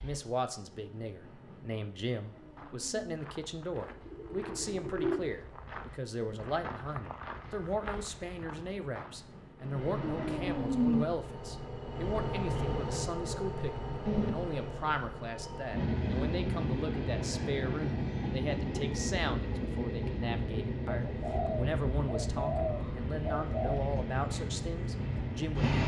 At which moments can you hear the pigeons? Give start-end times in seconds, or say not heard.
3.8-5.3, 21.1-23.9.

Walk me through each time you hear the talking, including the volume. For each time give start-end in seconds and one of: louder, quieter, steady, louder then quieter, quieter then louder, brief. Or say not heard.
0.0-25.8 steady.